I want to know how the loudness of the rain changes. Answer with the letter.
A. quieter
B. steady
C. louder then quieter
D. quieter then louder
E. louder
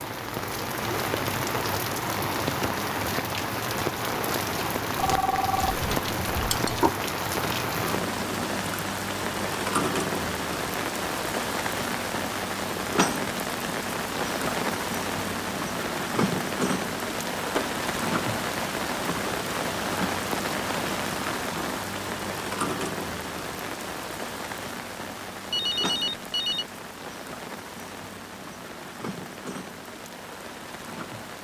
A.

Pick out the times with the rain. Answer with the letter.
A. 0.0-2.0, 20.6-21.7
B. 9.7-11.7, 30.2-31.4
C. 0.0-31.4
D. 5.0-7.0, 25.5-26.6
C.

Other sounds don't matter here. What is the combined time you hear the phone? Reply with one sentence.
The phone can be heard for 3 seconds in total.